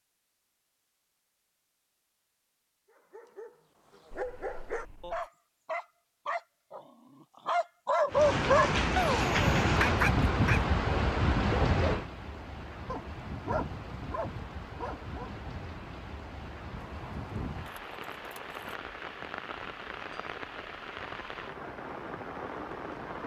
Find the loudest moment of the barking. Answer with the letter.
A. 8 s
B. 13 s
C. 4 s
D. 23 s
A.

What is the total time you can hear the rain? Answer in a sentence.
You can hear the rain for 15 seconds altogether.